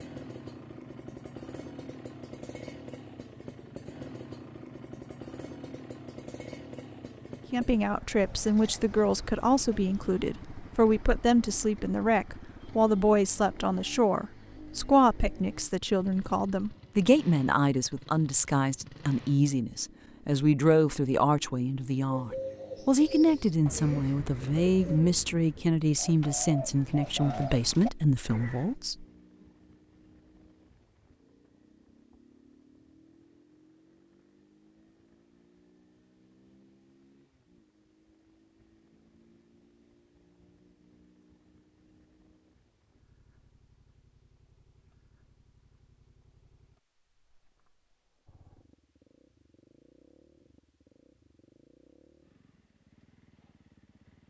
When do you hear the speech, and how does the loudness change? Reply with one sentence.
The speech can be heard from 7.5 to 29.1 s, at a steady volume.